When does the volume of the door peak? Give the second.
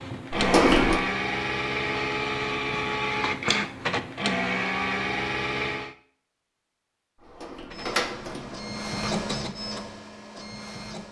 1 s.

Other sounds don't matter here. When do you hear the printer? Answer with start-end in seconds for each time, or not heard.
0.0-6.0, 7.7-11.0.